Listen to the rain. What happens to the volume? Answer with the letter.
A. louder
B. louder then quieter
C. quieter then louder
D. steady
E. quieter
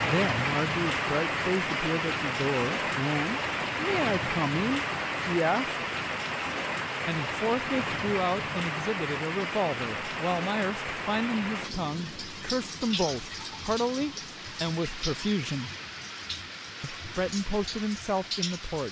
E.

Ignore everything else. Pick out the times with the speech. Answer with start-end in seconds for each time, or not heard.
0.0-5.8, 7.0-15.7, 16.8-18.8.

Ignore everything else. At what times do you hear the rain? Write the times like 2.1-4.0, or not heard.
0.0-18.8.